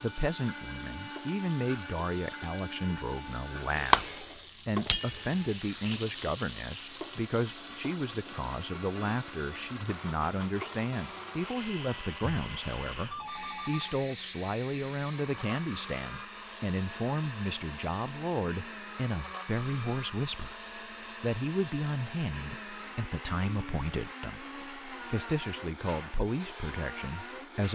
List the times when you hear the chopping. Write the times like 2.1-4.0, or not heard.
not heard.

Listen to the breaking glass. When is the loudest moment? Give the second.
4 s.